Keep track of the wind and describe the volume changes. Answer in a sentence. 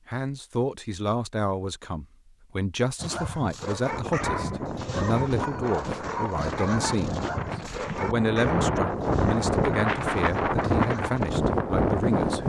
The volume of the wind goes up.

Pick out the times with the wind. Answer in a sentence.
You can hear the wind from 3.8 to 12.4 s.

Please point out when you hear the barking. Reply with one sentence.
You can hear the barking from 3.0 to 11.4 s.